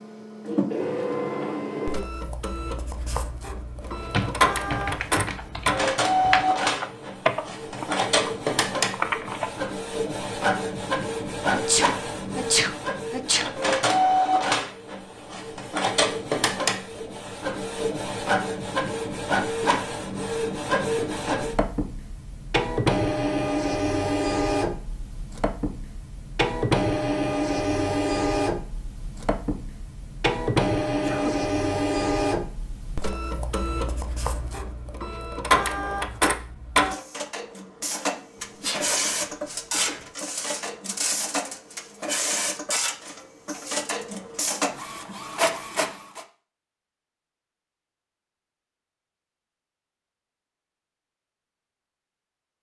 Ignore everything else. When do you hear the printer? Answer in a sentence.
You can hear the printer from 0.0 to 46.2 s.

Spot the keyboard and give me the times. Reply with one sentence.
The keyboard can be heard from 3.8 to 9.7 s.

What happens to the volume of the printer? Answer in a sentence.
The loudness of the printer stays about the same.